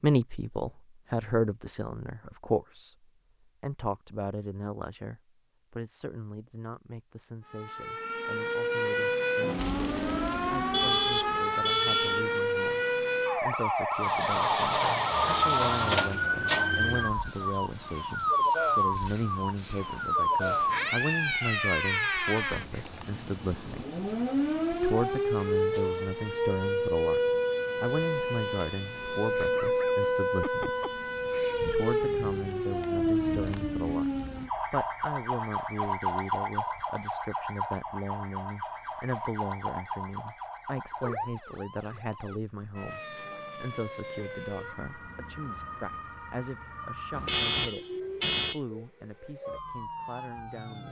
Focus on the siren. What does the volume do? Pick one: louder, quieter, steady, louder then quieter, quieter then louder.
quieter.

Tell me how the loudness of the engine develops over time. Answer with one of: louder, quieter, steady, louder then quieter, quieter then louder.
quieter.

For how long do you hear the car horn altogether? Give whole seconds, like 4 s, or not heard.
4 s.